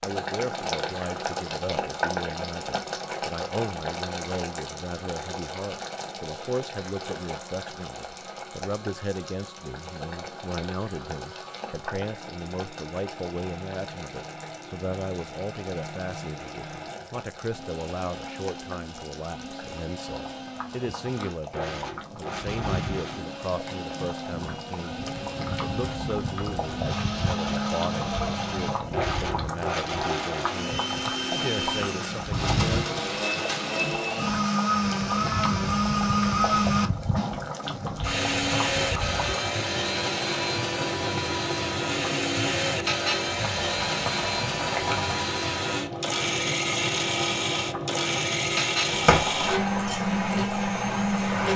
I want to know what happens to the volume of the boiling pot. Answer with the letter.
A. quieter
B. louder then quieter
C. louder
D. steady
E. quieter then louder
E.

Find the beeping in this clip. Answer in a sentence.
The beeping can't be heard in this clip.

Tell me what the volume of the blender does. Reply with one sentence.
The volume of the blender goes up.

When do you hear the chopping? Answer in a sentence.
The chopping can be heard from 48.9 to 50.0 s.